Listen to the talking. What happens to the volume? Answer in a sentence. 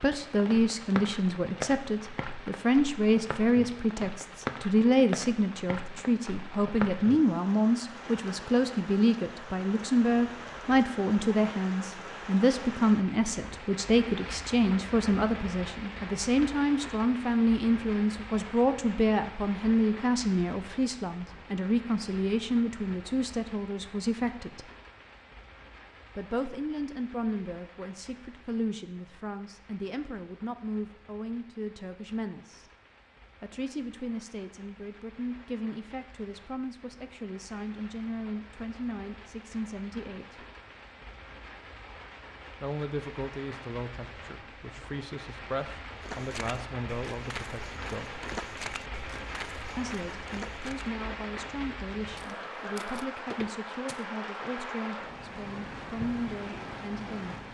The volume of the talking goes down.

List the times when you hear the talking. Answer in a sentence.
You can hear the talking from 0.0 to 24.7 s, from 26.1 to 32.7 s, from 33.4 to 40.5 s, from 42.6 to 48.2 s and from 49.8 to 57.4 s.